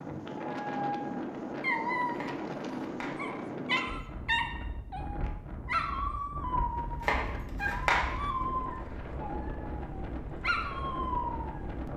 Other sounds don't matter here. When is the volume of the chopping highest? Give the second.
8 s.